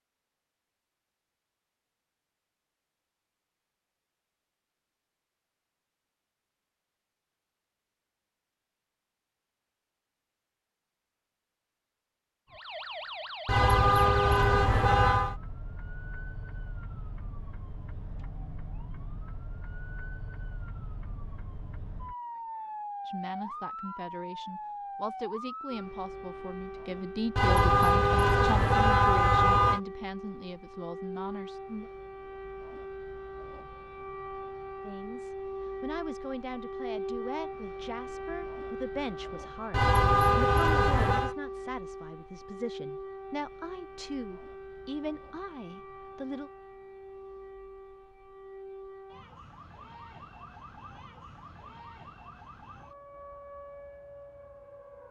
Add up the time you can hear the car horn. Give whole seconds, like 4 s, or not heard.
6 s.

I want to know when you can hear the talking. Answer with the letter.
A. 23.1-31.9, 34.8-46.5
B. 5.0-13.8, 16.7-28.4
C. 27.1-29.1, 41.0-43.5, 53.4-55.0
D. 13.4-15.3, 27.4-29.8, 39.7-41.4
A.